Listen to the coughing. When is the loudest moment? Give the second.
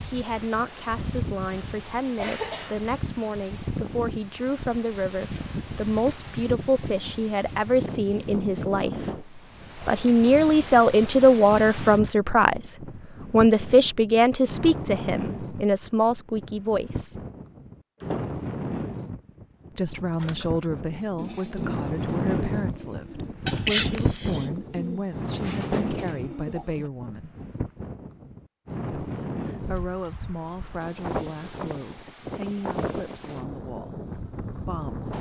24 s.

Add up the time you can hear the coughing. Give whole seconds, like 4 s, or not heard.
2 s.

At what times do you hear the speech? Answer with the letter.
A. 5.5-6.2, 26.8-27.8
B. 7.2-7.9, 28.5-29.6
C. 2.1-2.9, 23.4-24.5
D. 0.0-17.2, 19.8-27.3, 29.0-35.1
D.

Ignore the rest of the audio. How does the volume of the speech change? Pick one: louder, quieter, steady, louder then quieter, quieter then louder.
louder then quieter.